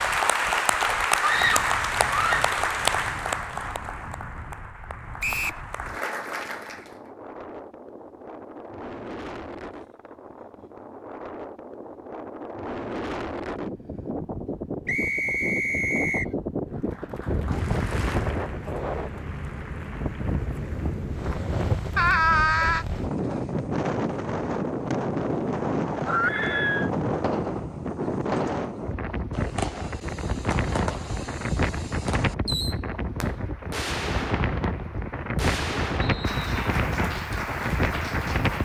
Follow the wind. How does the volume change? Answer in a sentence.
The loudness of the wind goes up.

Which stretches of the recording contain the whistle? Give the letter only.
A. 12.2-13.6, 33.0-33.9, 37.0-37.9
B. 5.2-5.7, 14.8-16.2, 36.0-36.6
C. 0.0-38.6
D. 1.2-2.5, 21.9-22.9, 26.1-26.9
B.